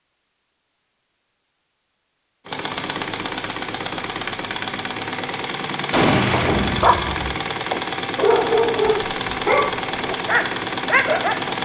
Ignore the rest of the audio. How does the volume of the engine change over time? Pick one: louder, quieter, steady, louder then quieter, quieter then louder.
steady.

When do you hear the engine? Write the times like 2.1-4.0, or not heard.
2.5-11.6.